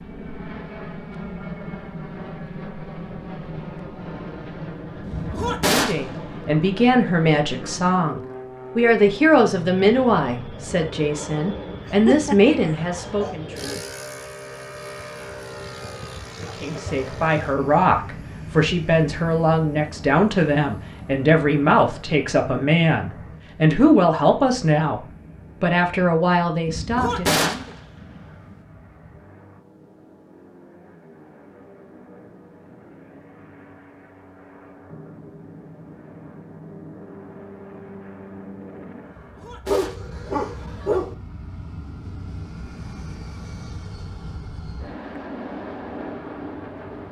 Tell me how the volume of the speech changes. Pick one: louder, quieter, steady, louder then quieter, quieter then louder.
steady.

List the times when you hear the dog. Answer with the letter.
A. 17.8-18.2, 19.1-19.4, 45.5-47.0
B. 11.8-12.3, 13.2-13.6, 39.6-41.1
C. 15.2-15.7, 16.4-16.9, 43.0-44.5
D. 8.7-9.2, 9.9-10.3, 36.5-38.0
B.